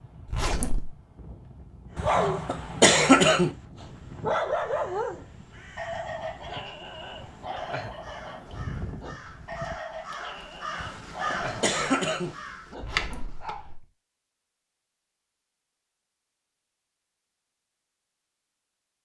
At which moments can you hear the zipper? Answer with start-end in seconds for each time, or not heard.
0.2-0.9, 12.8-13.8.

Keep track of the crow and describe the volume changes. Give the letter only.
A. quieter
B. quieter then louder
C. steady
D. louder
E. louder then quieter
D.